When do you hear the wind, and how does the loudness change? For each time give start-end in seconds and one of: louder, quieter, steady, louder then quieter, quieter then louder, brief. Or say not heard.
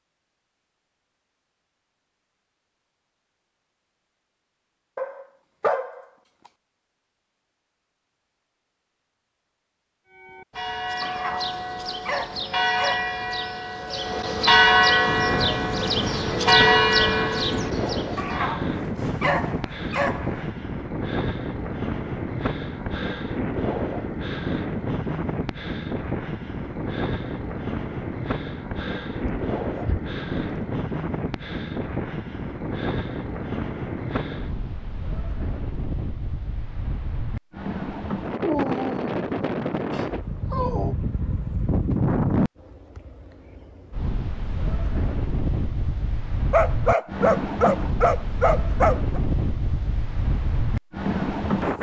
15.1-51.7 steady.